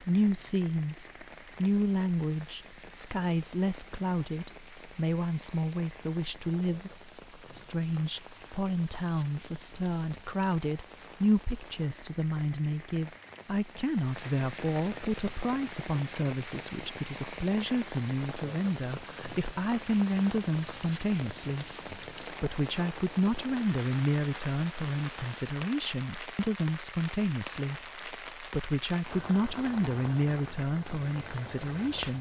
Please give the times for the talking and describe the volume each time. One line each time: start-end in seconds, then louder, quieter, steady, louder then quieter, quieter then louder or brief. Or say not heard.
0.0-32.1 steady.